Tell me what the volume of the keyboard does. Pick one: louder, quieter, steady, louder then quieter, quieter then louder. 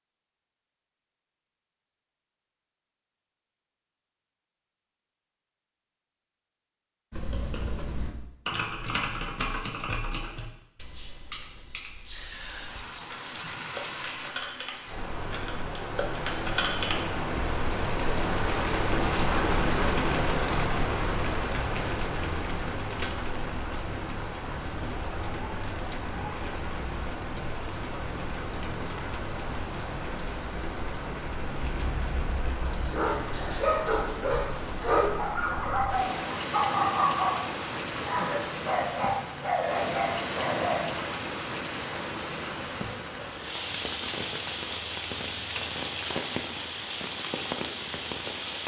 quieter then louder.